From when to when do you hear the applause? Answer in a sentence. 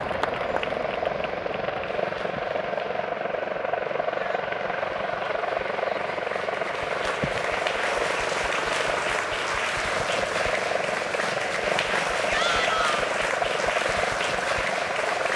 You can hear the applause from 0.0 to 15.3 s.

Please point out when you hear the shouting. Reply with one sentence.
The shouting can be heard from 12.3 to 13.1 s.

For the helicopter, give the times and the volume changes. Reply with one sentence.
The helicopter can be heard from 0.0 to 15.3 s, at a steady volume.